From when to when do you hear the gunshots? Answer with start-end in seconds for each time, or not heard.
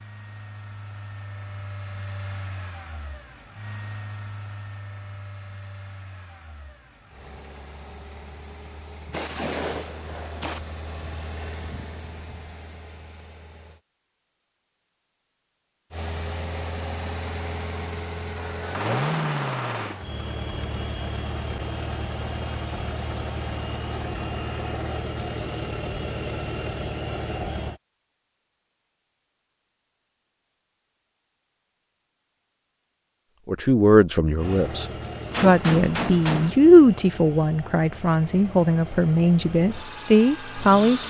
9.1-10.6, 18.4-20.1, 35.3-36.5.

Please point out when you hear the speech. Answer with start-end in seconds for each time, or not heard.
33.5-41.0.